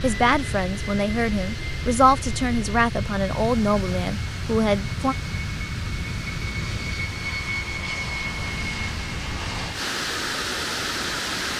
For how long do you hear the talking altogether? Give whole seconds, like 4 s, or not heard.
5 s.